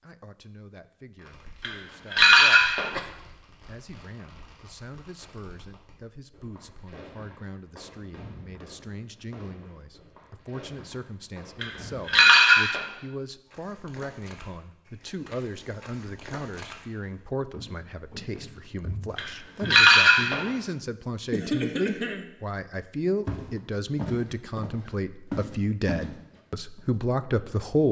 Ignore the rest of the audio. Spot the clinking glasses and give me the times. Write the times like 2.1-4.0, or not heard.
1.6-2.9, 11.6-12.8, 19.1-20.4.